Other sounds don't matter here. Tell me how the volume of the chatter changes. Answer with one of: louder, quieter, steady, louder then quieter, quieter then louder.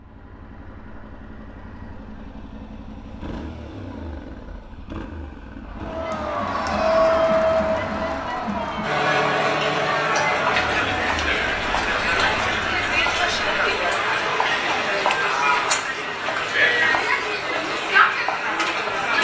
steady.